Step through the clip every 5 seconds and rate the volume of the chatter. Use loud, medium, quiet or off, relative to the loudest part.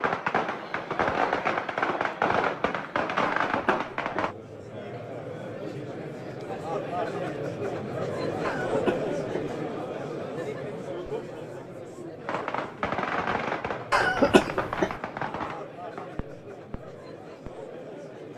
medium, loud, medium, medium.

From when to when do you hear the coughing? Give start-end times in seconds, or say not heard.
3.4-4.3, 8.4-9.4, 13.9-14.9.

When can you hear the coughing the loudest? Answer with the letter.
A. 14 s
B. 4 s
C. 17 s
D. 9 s
A.